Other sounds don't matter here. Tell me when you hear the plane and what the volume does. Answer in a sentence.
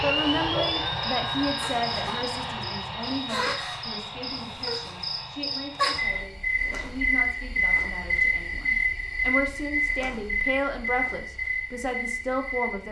The plane can be heard from 0.0 to 6.3 s, getting quieter.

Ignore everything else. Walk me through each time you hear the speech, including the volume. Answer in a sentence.
You can hear the speech from 0.0 to 12.8 s, getting quieter then louder.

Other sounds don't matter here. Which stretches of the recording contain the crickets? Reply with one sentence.
You can hear the crickets from 0.0 to 12.8 s.